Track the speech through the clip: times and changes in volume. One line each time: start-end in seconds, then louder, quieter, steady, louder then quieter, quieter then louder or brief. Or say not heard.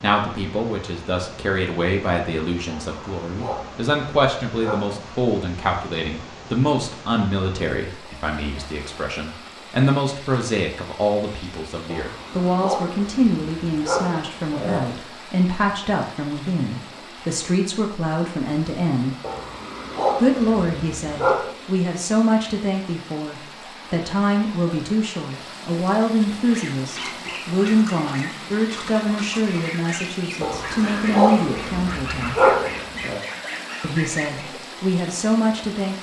0.0-19.1 steady
20.1-32.5 steady
33.8-35.9 brief.